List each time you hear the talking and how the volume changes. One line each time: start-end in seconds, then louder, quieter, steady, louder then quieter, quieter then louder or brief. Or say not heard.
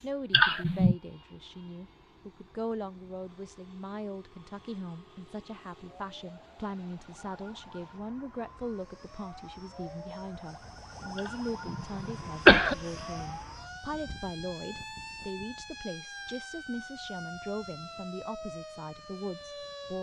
0.0-19.9 steady.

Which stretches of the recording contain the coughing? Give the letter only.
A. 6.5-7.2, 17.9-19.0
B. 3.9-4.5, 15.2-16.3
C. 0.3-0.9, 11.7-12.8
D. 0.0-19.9
C.